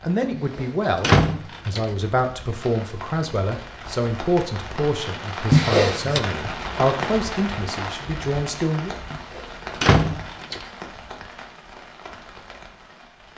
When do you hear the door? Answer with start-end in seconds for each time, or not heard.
0.3-1.9, 5.5-6.2, 9.1-10.7.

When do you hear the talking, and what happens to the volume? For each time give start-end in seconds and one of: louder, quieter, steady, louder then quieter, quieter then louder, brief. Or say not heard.
0.0-8.9 steady.